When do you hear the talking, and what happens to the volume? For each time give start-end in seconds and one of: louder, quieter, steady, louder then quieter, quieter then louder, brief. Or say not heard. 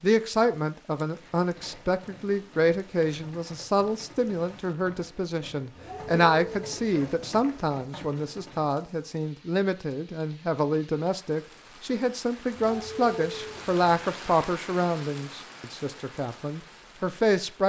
0.0-17.6 steady.